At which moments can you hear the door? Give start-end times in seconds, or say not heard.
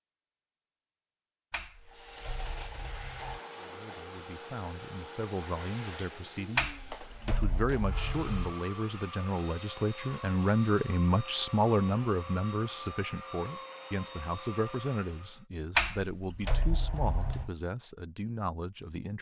1.5-3.4, 6.5-8.6, 15.8-17.5.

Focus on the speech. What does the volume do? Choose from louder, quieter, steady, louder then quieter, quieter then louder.
louder then quieter.